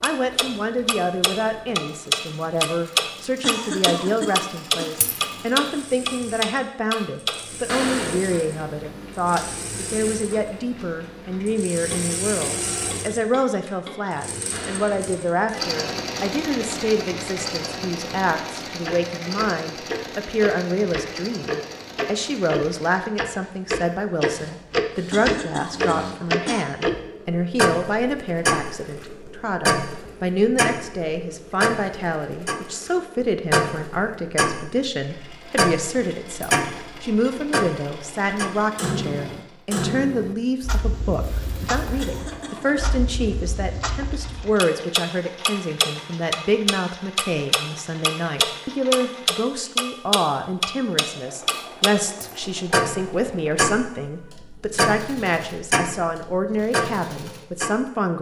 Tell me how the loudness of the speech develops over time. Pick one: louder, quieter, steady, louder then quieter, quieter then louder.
steady.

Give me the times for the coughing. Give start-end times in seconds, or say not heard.
3.4-4.9, 25.1-26.6, 42.0-42.9.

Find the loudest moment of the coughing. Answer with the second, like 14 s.
4 s.